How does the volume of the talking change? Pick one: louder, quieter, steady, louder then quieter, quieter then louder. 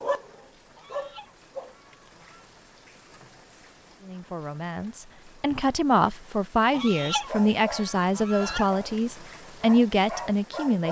louder.